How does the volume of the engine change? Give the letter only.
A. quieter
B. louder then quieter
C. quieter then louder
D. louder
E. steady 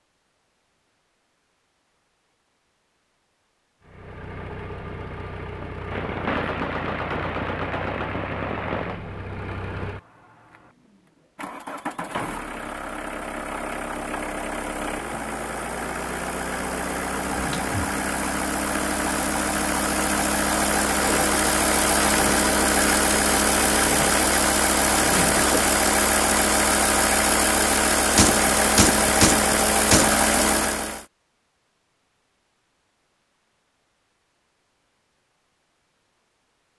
D.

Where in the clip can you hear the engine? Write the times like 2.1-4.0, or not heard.
3.8-31.1.